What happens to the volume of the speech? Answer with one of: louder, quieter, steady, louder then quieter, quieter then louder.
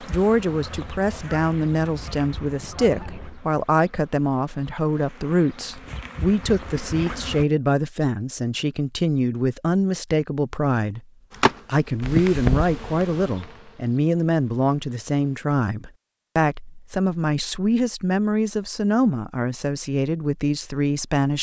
steady.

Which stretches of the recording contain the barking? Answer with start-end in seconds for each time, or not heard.
not heard.